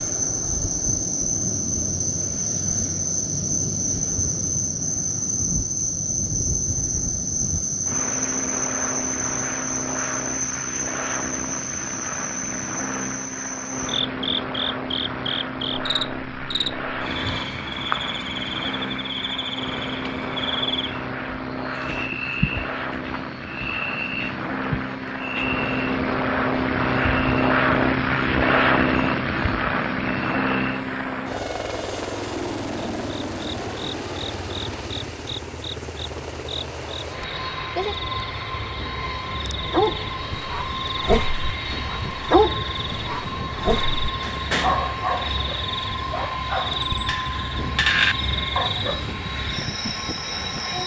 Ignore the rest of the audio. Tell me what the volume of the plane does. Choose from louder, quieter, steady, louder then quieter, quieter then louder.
louder then quieter.